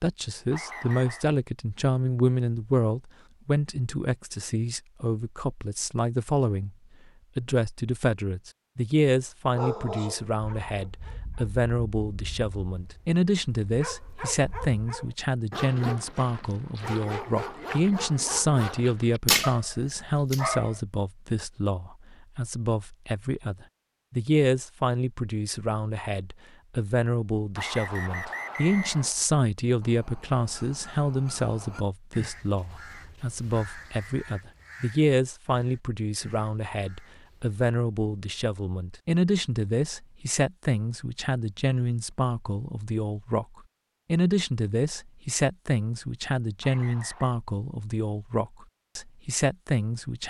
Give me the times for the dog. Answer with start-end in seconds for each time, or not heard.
9.5-20.8.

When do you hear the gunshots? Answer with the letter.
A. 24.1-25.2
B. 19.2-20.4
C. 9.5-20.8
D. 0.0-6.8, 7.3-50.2
B.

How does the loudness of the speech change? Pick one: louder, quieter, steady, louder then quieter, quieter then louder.
steady.